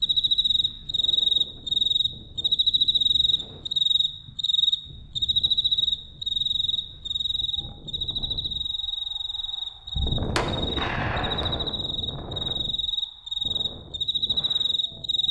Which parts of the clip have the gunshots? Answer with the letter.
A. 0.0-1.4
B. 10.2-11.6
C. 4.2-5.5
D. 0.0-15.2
B.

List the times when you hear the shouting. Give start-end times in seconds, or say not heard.
not heard.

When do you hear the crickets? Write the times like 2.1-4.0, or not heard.
0.0-15.2.